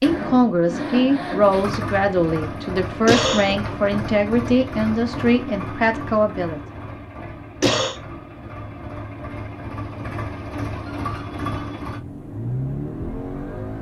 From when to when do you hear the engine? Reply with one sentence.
The engine can be heard from 0.0 to 13.7 s.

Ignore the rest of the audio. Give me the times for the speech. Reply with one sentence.
The speech can be heard from 0.0 to 6.6 s.